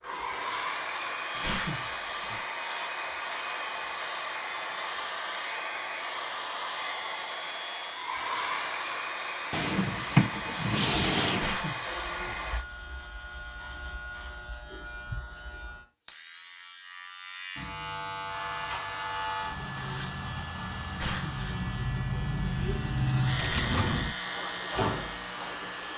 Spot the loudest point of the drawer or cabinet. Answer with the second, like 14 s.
10 s.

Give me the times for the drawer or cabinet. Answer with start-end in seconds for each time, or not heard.
9.5-11.5, 23.4-24.1.